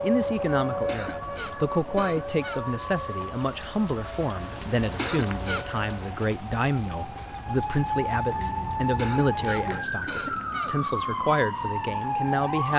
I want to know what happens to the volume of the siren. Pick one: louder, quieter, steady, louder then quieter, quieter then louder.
quieter then louder.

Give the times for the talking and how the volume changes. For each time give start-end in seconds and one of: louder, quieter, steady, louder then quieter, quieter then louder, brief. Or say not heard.
0.0-12.7 steady.